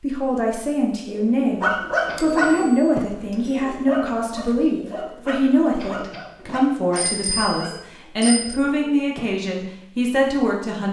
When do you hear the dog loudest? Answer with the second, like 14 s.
2 s.